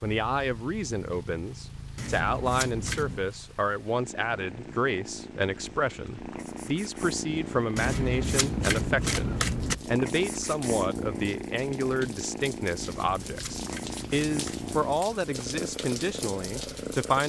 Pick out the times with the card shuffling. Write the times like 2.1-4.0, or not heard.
1.9-3.2, 7.8-9.8, 12.8-14.7.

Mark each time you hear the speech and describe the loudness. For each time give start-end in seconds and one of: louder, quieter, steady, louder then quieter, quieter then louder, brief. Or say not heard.
0.0-17.2 steady.